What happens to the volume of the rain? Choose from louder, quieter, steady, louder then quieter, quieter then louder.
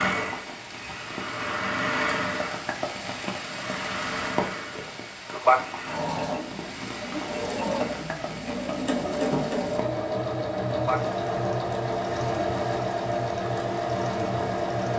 louder then quieter.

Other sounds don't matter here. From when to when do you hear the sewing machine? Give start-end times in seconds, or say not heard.
0.0-14.9.